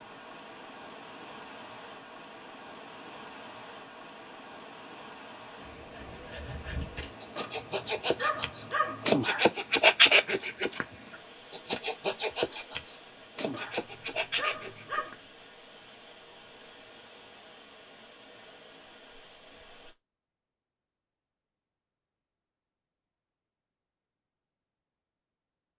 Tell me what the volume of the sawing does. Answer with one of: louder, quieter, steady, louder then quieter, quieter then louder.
louder then quieter.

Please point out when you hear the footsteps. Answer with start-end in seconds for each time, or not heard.
not heard.